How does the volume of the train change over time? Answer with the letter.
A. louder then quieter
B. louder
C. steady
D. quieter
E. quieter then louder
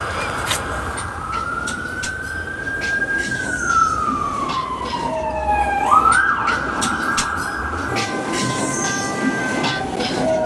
B.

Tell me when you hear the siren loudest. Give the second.
6 s.